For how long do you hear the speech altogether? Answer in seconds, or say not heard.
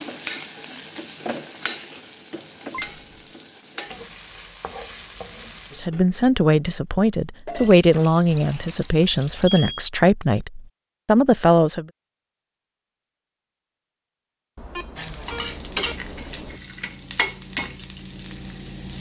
6 s.